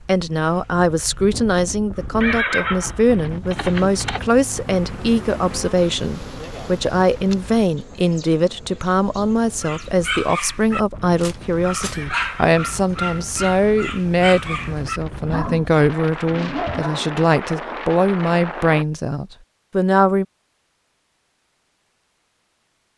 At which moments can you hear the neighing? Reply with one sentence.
The neighing can be heard from 2.2 to 4.2 s and from 11.9 to 12.6 s.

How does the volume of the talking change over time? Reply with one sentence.
The volume of the talking stays about the same.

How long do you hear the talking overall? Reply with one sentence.
You can hear the talking for 20 seconds altogether.